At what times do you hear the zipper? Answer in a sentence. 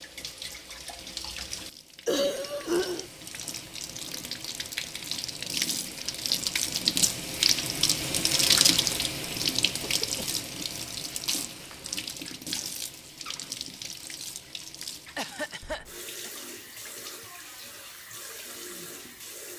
You can't hear the zipper here.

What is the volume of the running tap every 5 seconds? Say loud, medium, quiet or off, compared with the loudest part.
quiet, loud, medium, quiet.